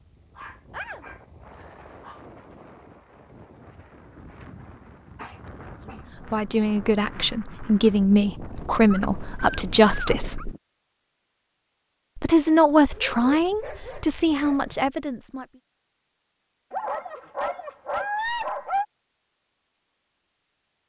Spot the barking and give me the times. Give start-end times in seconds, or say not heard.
0.3-2.2, 5.2-6.0, 8.8-10.4, 12.9-14.9, 16.7-18.9.